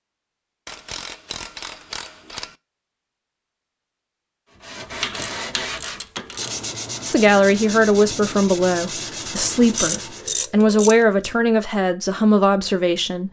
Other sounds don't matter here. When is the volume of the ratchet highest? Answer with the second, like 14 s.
10 s.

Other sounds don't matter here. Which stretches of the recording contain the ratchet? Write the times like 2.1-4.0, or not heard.
0.7-2.5, 4.8-6.6, 9.7-11.3.